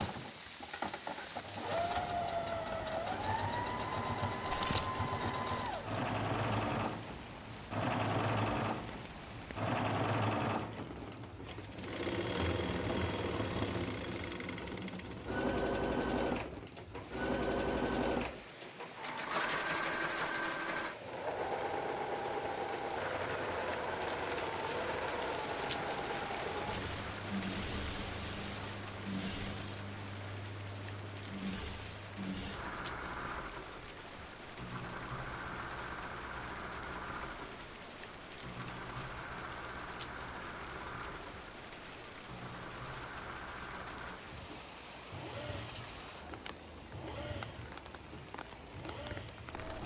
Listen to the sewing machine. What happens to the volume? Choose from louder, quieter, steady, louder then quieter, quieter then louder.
quieter.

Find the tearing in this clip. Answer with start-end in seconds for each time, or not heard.
4.5-6.0.